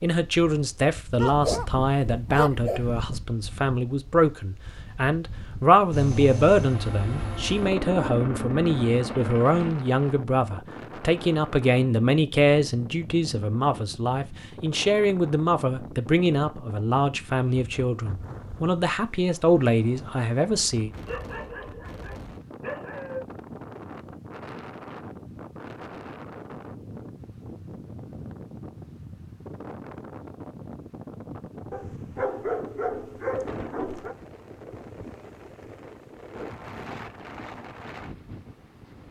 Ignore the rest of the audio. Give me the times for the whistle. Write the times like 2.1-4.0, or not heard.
not heard.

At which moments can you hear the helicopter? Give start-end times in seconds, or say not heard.
5.9-9.8.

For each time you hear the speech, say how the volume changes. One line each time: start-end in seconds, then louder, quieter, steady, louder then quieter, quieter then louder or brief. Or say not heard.
0.0-20.9 steady.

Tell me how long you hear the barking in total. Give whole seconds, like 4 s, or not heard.
7 s.